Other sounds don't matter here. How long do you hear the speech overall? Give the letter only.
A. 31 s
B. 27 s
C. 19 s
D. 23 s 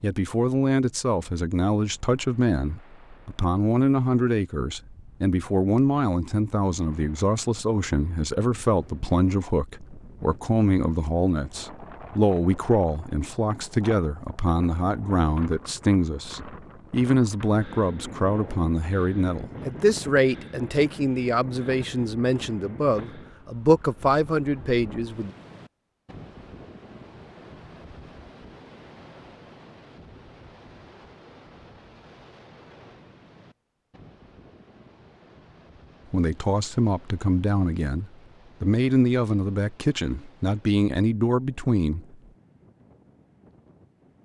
A.